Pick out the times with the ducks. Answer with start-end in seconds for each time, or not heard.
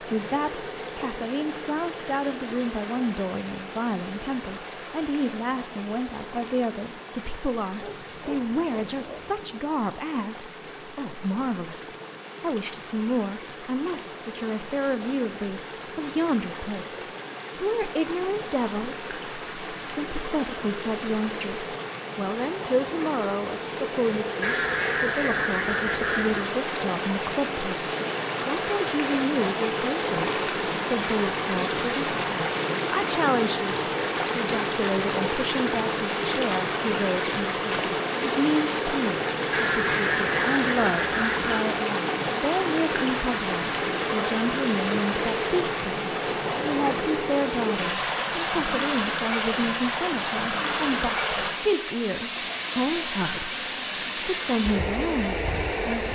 24.4-26.4, 39.5-41.6.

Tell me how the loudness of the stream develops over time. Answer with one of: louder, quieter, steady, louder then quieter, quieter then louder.
louder.